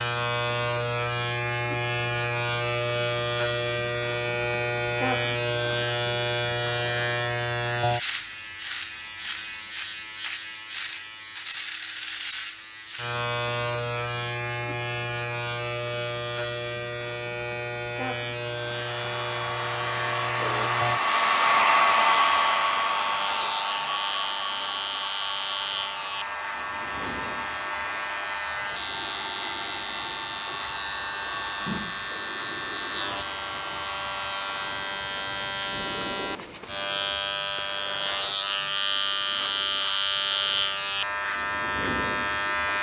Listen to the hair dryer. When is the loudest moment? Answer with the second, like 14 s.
22 s.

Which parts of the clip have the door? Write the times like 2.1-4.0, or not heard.
not heard.